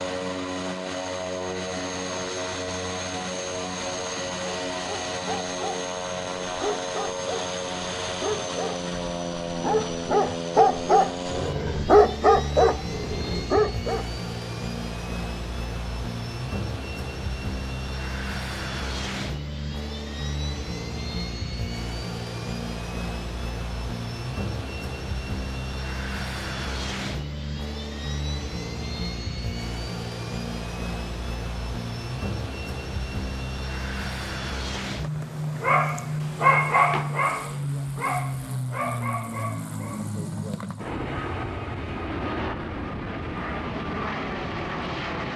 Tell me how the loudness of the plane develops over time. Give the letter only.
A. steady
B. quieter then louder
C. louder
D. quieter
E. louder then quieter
A.